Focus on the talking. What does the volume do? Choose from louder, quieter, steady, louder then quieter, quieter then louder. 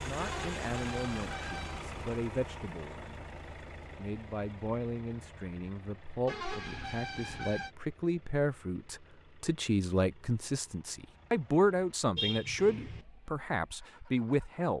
louder.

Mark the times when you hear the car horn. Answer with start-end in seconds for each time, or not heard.
0.1-2.0, 6.2-7.7, 12.2-13.1.